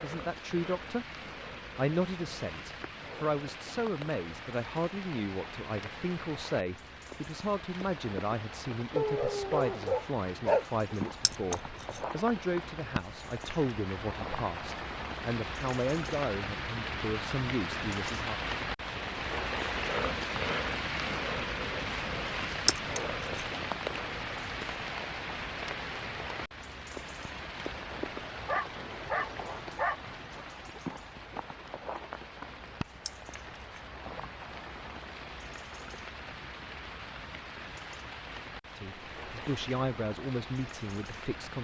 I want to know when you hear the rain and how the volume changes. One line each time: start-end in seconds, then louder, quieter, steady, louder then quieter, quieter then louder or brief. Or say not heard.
0.0-41.5 louder then quieter.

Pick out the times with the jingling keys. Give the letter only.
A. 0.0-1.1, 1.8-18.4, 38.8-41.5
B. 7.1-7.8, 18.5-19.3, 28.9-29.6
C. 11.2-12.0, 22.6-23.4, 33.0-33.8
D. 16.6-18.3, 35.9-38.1
C.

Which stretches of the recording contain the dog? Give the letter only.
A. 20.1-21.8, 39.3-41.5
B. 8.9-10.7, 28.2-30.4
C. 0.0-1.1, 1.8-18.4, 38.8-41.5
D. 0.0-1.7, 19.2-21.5
B.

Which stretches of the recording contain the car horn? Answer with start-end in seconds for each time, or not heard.
not heard.